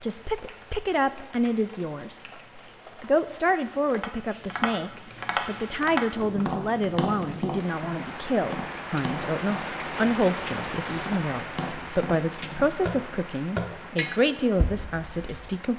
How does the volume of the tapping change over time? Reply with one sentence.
The volume of the tapping goes down, then up.